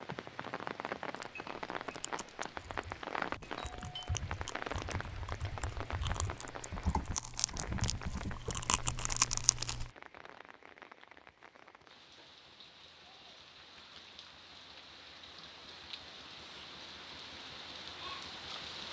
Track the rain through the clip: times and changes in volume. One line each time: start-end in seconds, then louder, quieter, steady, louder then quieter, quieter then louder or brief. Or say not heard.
0.0-18.8 quieter then louder.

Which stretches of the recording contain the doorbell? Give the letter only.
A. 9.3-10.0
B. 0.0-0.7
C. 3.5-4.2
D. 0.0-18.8
C.